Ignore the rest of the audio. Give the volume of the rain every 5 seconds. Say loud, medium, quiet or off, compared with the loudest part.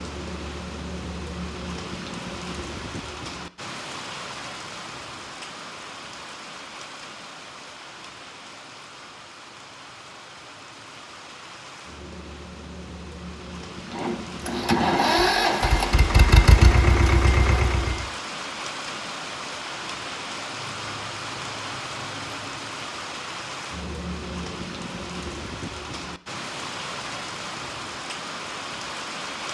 loud, medium, medium, loud, loud, loud.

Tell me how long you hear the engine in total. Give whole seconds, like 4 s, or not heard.
4 s.